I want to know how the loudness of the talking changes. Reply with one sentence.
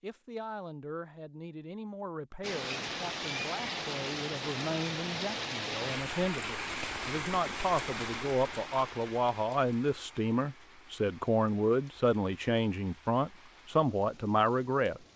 The volume of the talking goes up.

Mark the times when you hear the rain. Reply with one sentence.
The rain can be heard from 2.4 to 15.1 s.